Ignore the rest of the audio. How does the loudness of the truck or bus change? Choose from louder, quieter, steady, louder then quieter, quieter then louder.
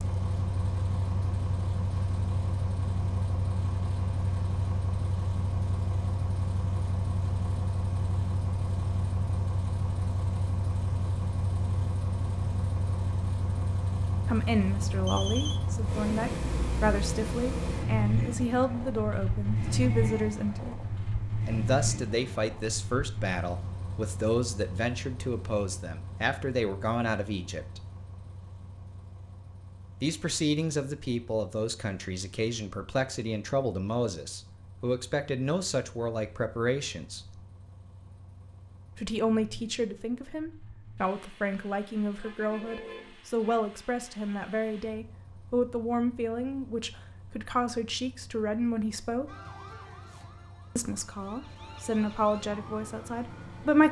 quieter.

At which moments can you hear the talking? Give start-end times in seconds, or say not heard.
14.2-20.8, 21.4-27.8, 30.0-37.4, 39.0-49.4, 50.8-53.8.